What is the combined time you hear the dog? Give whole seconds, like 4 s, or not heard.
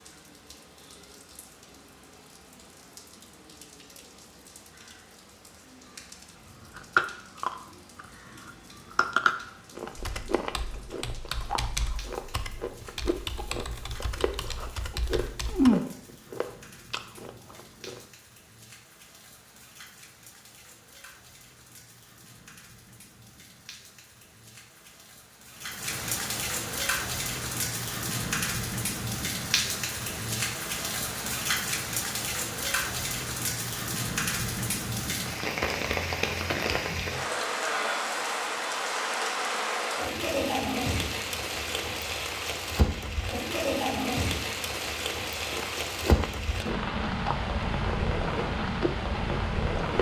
not heard.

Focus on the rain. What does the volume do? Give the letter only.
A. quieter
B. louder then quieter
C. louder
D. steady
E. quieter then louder
C.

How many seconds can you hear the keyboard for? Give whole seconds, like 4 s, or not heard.
6 s.